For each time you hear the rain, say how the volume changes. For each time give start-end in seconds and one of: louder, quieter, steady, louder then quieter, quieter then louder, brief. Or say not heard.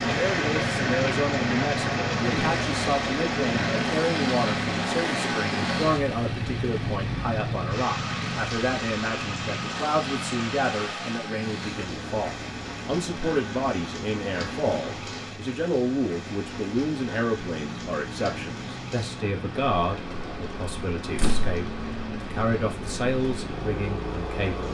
0.0-24.6 quieter.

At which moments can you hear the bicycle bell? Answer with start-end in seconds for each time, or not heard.
not heard.